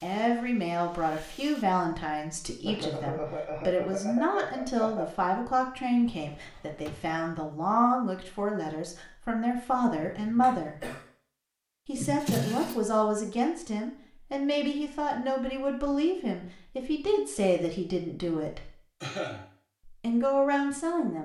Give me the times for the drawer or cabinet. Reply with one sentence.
You can hear the drawer or cabinet from 6.2 to 7.2 s and from 11.9 to 12.8 s.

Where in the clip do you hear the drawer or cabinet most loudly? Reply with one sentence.
The volume of the drawer or cabinet peaks at 12 seconds.